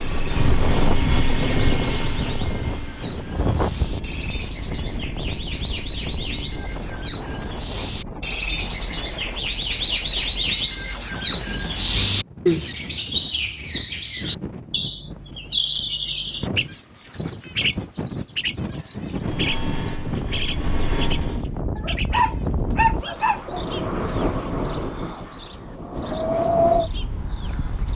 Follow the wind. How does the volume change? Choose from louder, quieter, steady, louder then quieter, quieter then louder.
quieter then louder.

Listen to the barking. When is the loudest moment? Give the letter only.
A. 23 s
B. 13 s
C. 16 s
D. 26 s
A.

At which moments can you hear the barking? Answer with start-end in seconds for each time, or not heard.
21.8-23.6.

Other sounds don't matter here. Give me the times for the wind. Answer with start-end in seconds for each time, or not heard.
0.0-27.9.